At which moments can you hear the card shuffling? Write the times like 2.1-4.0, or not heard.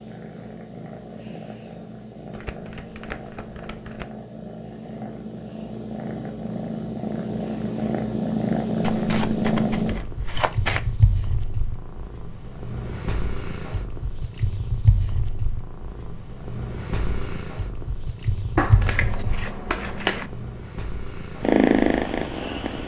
2.3-4.0, 8.8-10.8, 18.6-20.3.